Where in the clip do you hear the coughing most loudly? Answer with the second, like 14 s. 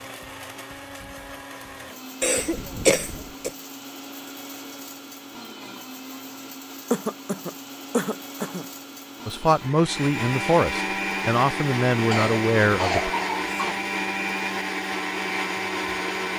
3 s.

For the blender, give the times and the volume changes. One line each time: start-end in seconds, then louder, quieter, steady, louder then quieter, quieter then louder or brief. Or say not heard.
0.0-16.3 louder.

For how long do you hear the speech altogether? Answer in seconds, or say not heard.
4 s.